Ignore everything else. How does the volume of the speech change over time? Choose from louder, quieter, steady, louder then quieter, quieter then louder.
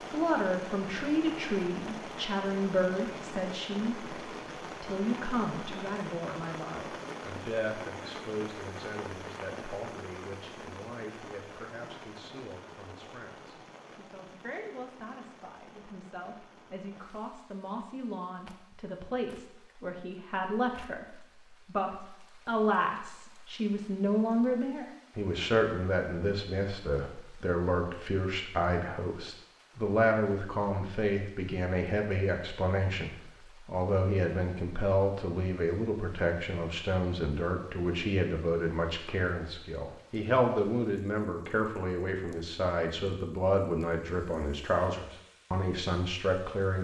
quieter then louder.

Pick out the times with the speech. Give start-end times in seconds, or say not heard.
0.1-46.8.